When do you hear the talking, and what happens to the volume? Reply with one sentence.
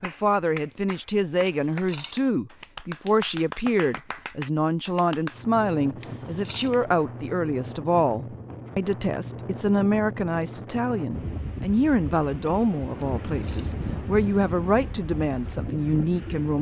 The talking can be heard from 0.0 to 16.5 s, at a steady volume.